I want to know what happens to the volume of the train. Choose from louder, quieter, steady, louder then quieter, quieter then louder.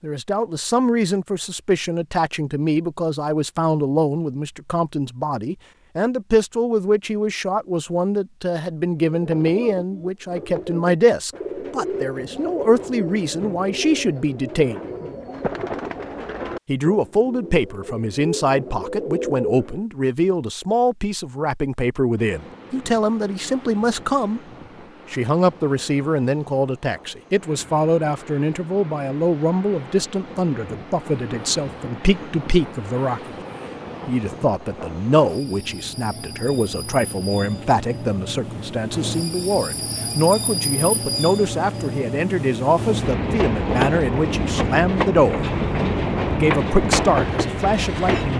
louder.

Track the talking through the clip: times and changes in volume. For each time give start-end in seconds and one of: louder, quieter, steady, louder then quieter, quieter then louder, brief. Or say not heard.
0.0-14.8 steady
16.6-24.4 steady
25.1-33.4 steady
34.0-45.5 steady
46.3-48.3 brief.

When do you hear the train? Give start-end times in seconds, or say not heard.
22.1-48.3.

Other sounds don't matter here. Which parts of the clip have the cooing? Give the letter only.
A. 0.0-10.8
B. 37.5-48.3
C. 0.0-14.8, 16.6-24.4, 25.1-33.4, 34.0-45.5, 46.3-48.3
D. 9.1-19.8
D.